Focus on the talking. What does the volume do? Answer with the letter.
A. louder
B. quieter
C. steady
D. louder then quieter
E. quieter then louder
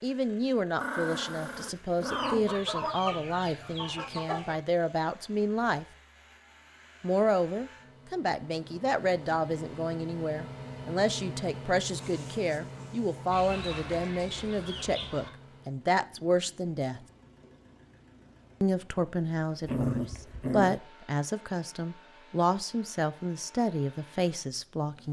C.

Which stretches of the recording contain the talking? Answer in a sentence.
You can hear the talking from 0.0 to 5.8 s, from 7.0 to 17.0 s and from 18.6 to 25.0 s.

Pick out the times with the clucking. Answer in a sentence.
You can hear the clucking from 2.1 to 4.6 s and from 13.3 to 15.3 s.